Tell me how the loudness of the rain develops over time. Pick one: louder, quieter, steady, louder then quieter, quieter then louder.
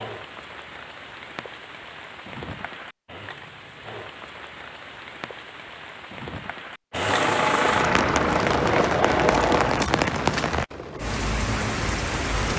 louder.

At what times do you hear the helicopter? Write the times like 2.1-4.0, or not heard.
6.9-9.8.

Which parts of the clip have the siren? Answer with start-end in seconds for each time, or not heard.
not heard.